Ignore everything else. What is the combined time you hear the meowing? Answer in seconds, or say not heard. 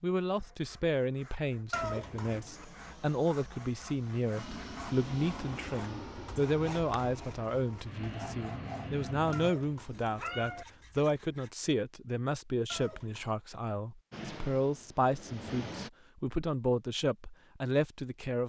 3 s.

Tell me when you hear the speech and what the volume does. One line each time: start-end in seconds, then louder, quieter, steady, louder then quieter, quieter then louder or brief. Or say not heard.
0.0-18.4 steady.